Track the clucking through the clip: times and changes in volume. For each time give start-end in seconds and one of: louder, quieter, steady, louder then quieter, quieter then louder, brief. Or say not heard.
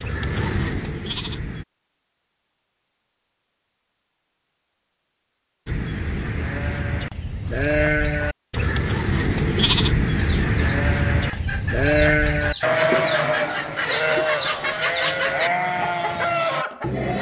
10.2-17.1 louder.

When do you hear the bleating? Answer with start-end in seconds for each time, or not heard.
0.0-1.6, 5.7-17.1.